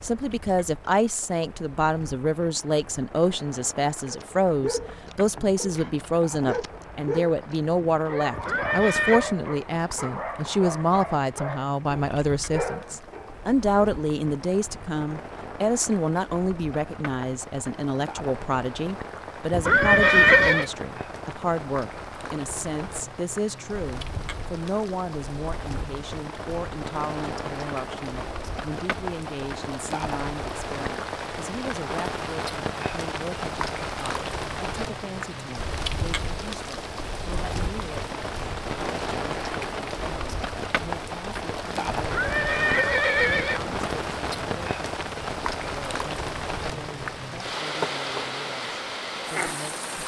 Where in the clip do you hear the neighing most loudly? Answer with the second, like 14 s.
20 s.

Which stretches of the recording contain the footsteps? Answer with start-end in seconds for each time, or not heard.
not heard.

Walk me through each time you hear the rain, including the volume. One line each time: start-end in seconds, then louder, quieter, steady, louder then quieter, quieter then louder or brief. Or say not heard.
0.0-50.0 louder.